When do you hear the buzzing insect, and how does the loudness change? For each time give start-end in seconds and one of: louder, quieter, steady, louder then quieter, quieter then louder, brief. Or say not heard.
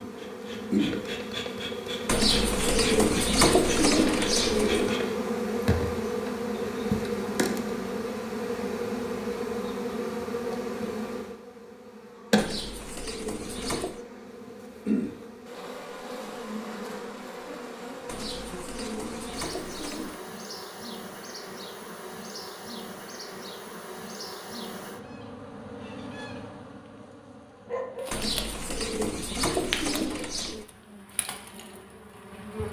0.0-32.6 quieter.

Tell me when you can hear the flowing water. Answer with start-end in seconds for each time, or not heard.
not heard.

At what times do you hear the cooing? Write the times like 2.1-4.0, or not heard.
2.0-5.0, 12.3-14.0, 18.1-20.2, 28.1-30.6.